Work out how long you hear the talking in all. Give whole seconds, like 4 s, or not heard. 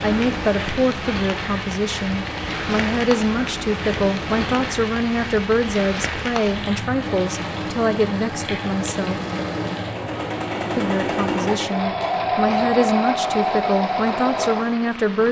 14 s.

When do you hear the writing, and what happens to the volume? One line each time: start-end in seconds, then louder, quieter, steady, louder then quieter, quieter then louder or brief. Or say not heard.
not heard.